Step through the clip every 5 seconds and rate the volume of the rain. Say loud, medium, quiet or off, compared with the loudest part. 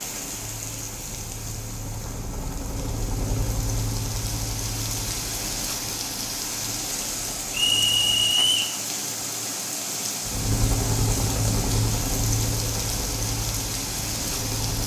medium, loud, loud.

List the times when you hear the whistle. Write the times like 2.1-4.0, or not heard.
7.5-8.8.